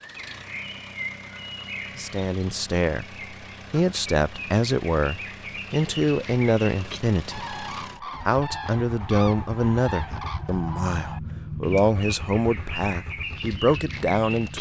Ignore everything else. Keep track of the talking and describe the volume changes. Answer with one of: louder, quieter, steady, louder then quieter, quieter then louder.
steady.